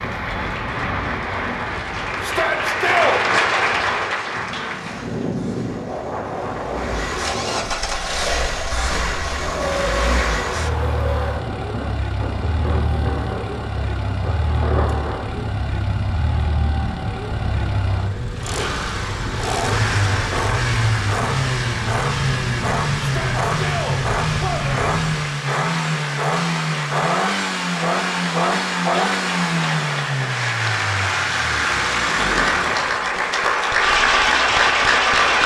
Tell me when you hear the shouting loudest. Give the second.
3 s.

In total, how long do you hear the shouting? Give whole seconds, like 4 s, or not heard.
3 s.